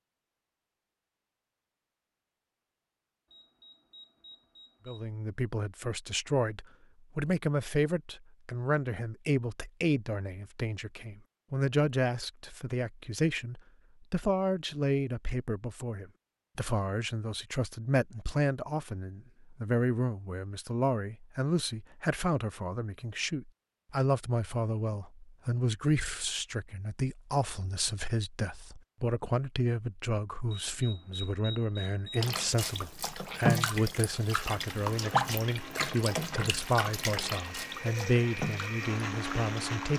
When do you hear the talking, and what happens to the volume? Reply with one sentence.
You can hear the talking from 4.8 to 39.9 s, at a steady volume.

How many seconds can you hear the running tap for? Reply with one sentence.
The running tap can be heard for 8 seconds in total.